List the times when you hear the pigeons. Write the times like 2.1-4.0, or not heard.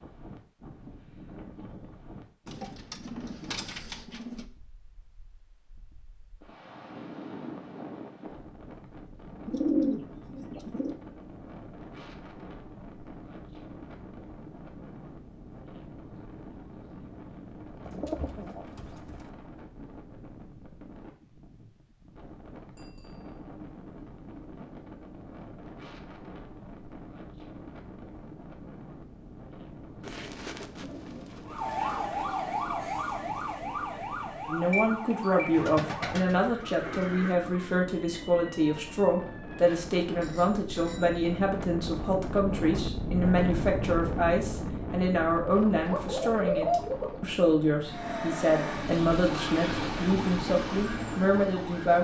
2.5-4.5, 9.4-10.9, 17.9-19.3, 30.0-31.8, 35.5-37.4, 45.5-47.2.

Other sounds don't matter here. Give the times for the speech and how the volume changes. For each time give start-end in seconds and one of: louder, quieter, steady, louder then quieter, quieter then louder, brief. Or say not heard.
34.5-52.0 steady.